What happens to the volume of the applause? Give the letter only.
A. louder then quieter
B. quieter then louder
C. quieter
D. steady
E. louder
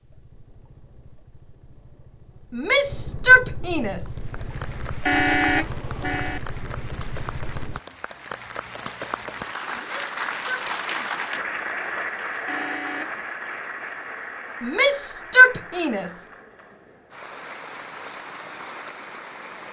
A.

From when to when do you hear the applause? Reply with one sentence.
You can hear the applause from 4.0 to 19.6 s.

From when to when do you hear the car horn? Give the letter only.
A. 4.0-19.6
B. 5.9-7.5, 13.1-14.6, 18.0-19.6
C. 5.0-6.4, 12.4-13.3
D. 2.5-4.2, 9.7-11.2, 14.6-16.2
C.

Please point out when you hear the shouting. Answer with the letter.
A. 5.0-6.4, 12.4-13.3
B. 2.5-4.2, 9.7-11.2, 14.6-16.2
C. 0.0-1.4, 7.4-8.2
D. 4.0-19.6
B.